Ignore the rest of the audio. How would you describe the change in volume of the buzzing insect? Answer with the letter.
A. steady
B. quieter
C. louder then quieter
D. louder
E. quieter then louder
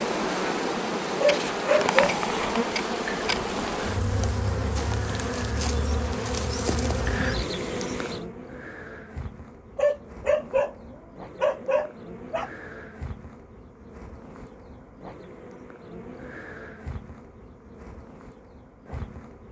B.